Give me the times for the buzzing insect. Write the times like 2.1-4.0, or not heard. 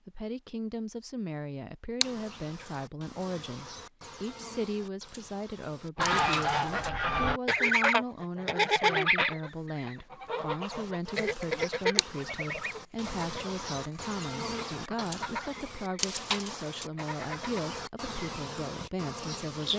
2.0-6.9, 10.6-19.7.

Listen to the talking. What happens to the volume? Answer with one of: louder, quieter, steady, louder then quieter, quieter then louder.
steady.